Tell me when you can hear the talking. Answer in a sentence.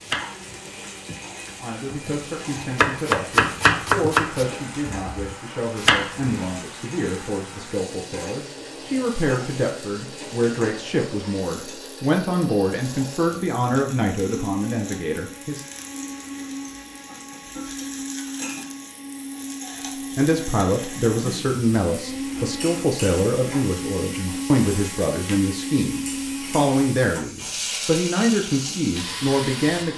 You can hear the talking from 1.6 to 15.7 s and from 20.1 to 29.9 s.